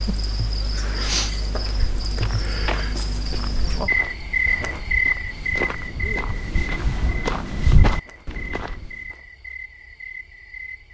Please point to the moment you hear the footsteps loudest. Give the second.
8 s.